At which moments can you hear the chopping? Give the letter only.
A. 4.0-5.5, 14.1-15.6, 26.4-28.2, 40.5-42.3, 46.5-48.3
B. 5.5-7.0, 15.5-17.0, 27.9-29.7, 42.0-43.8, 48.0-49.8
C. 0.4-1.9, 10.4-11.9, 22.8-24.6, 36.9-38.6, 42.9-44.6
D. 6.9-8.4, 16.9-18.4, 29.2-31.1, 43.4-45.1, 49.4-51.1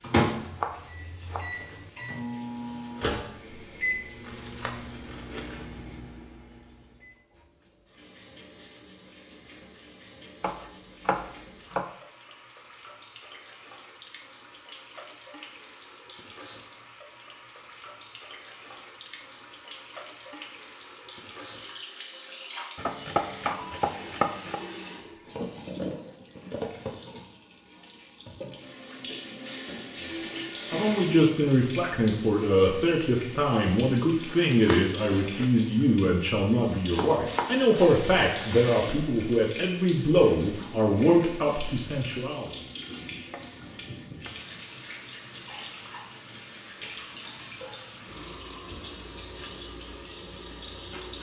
C.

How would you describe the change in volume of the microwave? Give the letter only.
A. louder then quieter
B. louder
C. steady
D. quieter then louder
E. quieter
A.